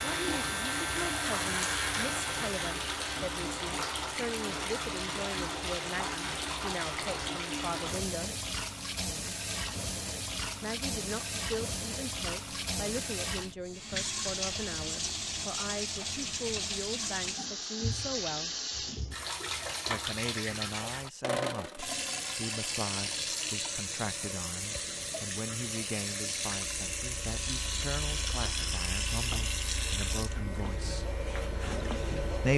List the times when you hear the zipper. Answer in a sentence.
You can't hear the zipper here.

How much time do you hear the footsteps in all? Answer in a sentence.
You can't hear the footsteps here.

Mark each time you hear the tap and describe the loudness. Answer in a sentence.
You can hear the tap from 0.0 to 32.5 s, at a steady volume.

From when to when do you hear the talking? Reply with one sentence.
You can hear the talking from 0.0 to 8.3 s, from 10.6 to 18.5 s and from 19.9 to 31.1 s.